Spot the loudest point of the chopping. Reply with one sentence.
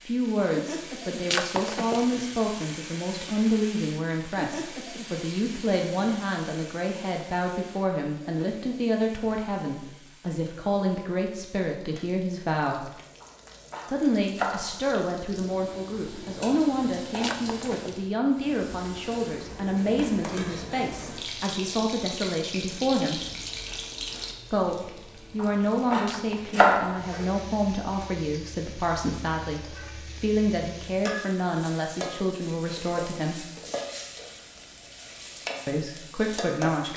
The volume of the chopping peaks at 27 seconds.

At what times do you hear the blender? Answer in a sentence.
The blender can't be heard in this clip.